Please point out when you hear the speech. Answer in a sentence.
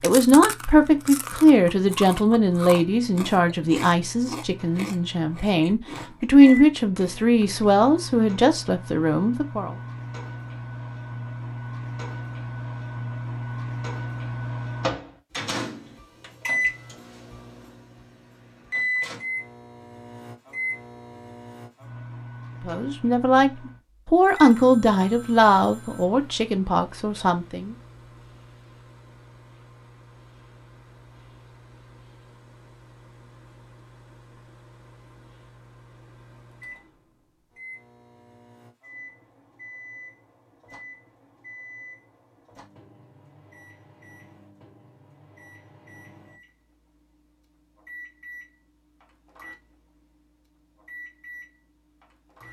The speech can be heard from 0.0 to 9.8 s and from 22.6 to 27.8 s.